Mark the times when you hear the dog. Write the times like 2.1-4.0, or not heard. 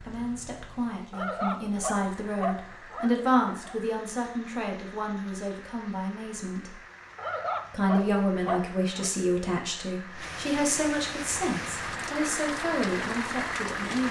1.1-3.8, 7.2-9.1.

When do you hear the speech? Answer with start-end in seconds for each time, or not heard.
0.0-6.8, 7.7-14.0.